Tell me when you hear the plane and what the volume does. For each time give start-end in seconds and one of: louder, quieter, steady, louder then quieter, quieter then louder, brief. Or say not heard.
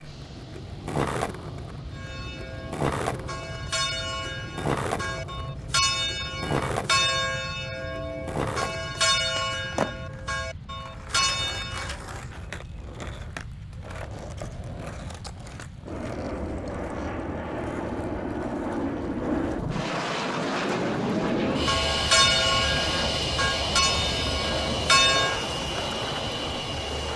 0.0-27.1 louder.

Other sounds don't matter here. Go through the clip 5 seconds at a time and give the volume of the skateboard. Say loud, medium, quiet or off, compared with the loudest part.
loud, loud, medium, medium, loud, loud.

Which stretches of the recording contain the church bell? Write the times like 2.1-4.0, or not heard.
1.9-12.0, 21.5-25.4.